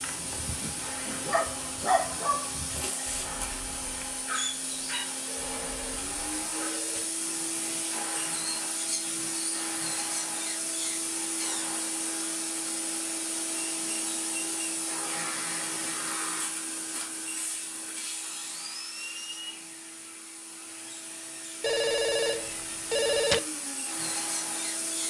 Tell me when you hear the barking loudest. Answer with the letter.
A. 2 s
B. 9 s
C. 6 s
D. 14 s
A.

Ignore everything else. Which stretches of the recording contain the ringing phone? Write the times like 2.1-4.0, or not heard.
5.2-7.0, 21.6-23.4.